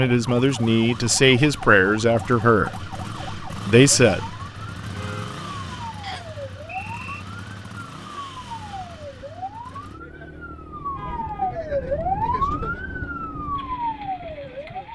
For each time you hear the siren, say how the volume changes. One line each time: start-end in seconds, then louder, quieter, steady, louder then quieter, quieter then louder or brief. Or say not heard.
0.0-14.9 louder.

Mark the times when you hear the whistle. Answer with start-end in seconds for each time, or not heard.
6.0-7.2.